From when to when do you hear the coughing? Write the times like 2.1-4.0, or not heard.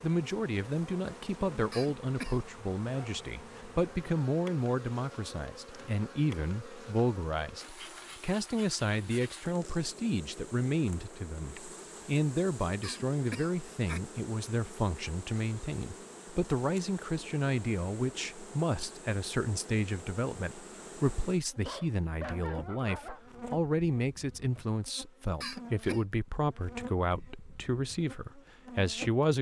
1.7-2.5, 12.8-14.0, 25.4-26.0.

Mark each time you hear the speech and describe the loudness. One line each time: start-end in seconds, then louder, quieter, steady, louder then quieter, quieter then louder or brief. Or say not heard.
0.0-29.3 steady.